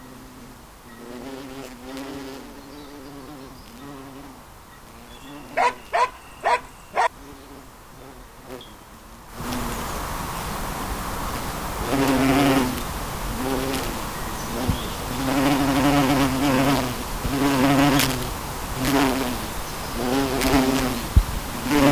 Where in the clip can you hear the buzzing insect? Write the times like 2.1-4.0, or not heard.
0.0-21.8.